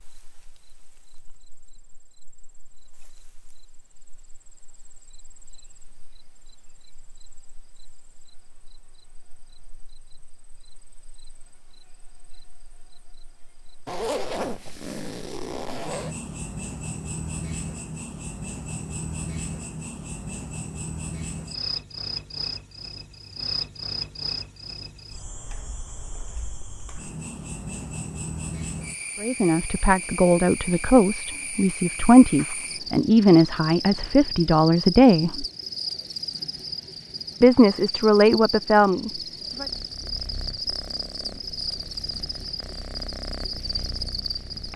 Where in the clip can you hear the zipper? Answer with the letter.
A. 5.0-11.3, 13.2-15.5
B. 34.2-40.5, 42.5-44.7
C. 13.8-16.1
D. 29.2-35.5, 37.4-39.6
C.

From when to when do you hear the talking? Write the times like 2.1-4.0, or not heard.
29.2-35.5, 37.4-39.6.